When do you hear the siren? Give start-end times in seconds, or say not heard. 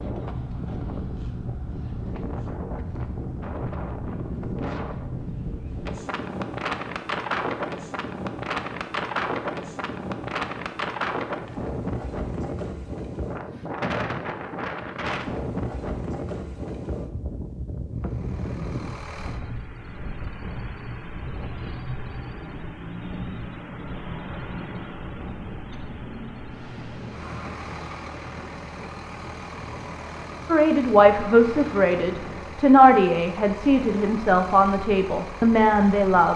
not heard.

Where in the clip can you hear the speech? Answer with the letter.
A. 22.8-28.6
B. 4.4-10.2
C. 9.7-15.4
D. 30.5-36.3
D.